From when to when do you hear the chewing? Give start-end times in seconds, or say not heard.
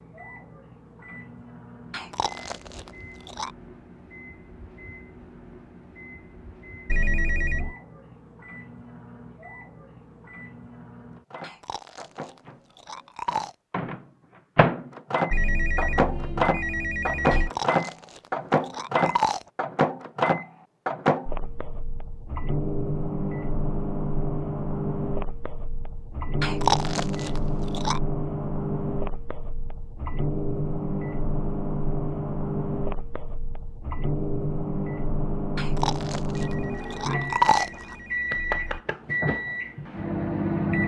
1.9-3.5, 11.4-13.6, 17.3-19.4, 26.4-28.0, 35.5-38.0.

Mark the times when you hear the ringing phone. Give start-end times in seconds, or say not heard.
6.8-7.8, 15.3-17.5, 36.3-38.9.